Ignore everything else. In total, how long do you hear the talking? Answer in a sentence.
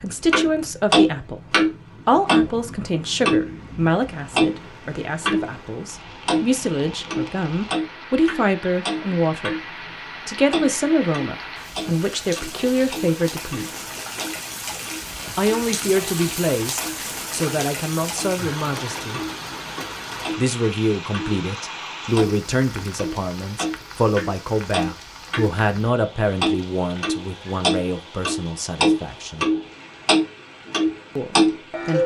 You can hear the talking for 28 seconds altogether.